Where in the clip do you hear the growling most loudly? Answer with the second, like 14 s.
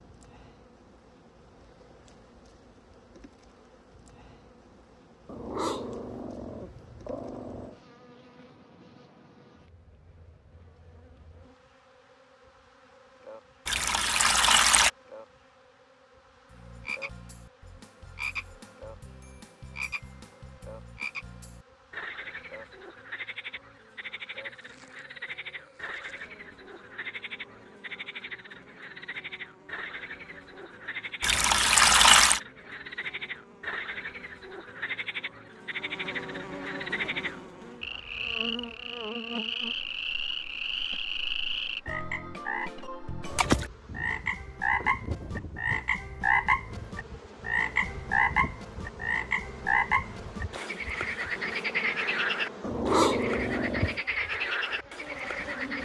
53 s.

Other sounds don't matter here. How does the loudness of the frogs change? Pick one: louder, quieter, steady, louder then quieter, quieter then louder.
louder.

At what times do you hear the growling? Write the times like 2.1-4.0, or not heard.
5.2-7.8, 52.6-54.0.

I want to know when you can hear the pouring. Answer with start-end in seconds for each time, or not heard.
13.7-14.9, 31.2-32.4.